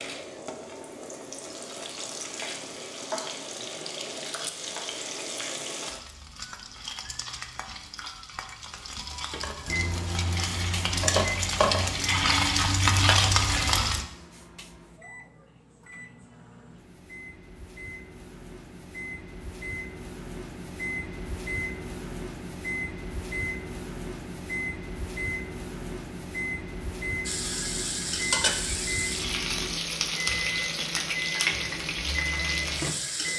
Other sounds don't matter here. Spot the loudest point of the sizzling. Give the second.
13 s.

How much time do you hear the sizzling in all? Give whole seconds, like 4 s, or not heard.
20 s.